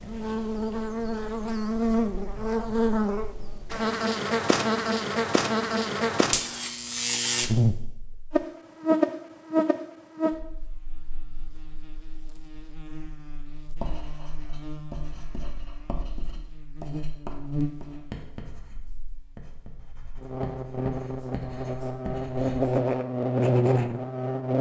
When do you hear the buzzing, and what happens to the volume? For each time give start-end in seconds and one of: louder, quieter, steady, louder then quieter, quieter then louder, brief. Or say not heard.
0.0-24.5 quieter then louder.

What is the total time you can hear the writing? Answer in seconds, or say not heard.
9 s.